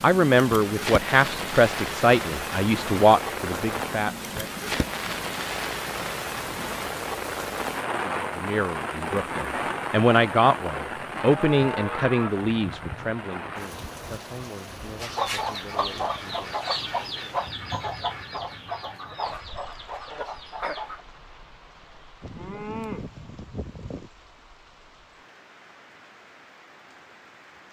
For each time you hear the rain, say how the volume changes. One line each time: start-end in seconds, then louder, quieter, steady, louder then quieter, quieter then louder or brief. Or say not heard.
0.0-27.6 quieter.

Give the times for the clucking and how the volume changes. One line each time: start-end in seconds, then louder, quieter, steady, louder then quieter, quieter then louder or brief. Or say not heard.
14.9-21.0 quieter.